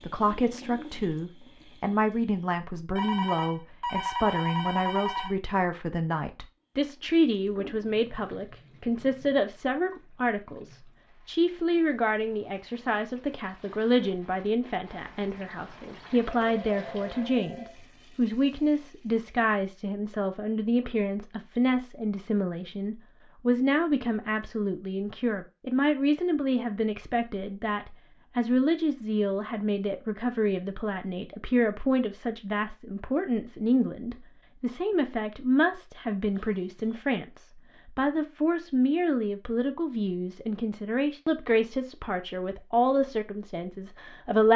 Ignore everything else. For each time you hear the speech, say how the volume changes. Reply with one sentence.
You can hear the speech from 0.0 to 44.5 s, at a steady volume.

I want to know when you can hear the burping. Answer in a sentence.
You can't hear the burping here.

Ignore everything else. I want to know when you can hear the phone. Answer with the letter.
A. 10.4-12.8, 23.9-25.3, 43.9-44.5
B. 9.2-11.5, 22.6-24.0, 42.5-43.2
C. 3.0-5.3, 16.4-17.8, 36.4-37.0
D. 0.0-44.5
C.